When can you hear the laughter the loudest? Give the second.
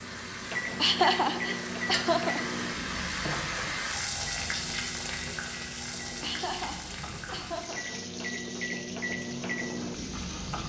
1 s.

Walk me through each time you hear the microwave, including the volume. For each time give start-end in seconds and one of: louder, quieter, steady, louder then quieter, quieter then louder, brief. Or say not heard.
0.0-10.6 quieter then louder.